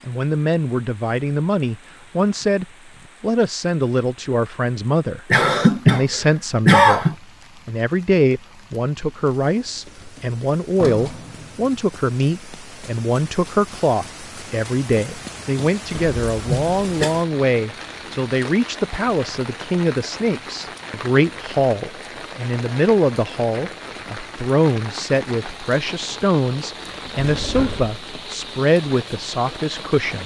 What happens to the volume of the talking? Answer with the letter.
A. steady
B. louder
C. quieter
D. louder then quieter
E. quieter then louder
A.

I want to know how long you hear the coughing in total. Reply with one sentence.
The coughing can be heard for 3 seconds in total.